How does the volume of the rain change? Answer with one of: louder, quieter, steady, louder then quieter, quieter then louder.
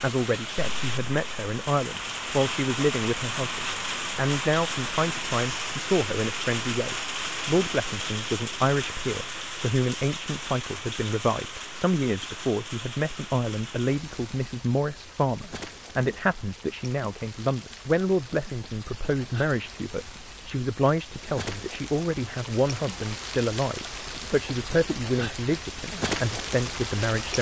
quieter then louder.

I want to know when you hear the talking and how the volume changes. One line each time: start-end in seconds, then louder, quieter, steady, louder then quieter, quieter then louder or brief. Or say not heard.
0.0-27.3 steady.